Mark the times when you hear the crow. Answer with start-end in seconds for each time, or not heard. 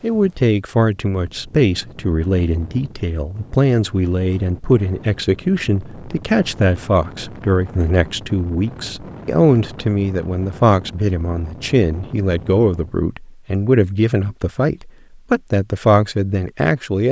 not heard.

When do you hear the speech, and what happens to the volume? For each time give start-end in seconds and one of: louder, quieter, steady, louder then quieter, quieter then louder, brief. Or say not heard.
0.0-17.0 steady.